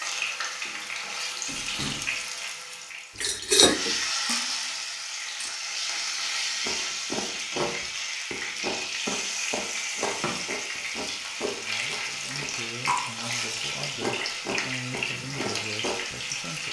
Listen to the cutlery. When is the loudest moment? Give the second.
4 s.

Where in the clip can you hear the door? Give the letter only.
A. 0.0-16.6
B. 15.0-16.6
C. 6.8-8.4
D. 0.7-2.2
D.